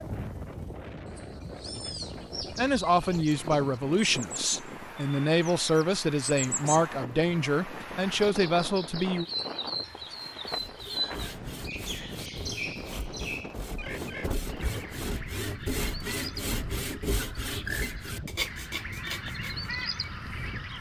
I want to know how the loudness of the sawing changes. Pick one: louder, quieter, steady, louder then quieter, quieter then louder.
louder.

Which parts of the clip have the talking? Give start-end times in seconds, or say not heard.
2.5-9.2.